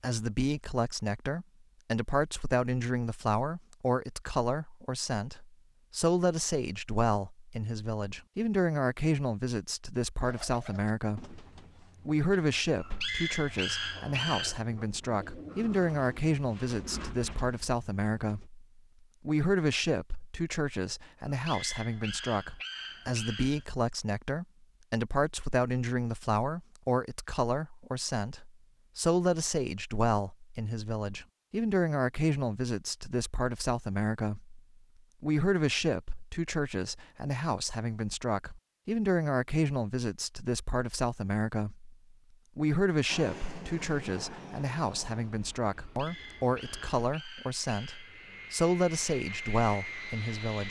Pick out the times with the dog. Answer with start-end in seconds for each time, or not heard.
12.8-14.6, 21.2-23.6, 45.8-48.5.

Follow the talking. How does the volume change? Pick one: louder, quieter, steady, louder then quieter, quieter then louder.
steady.